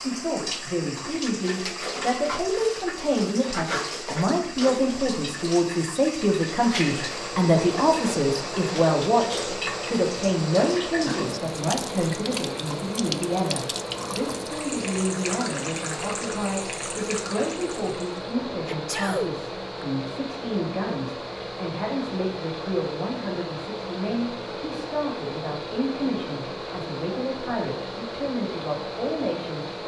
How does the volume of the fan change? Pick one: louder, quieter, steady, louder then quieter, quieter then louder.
steady.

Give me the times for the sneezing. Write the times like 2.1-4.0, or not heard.
18.6-19.9.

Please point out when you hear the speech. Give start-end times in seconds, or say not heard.
0.0-29.8.